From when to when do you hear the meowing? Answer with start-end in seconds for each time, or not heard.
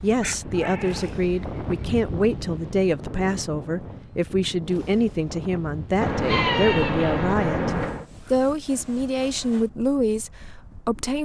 0.2-1.9, 6.0-8.1.